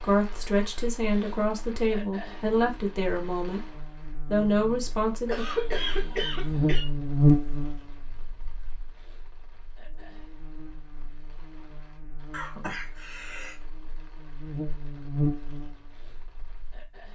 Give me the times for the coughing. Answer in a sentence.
You can hear the coughing from 5.2 to 6.8 s and from 12.3 to 13.6 s.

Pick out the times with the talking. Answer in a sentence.
The talking can be heard from 0.0 to 3.7 s and from 4.3 to 5.5 s.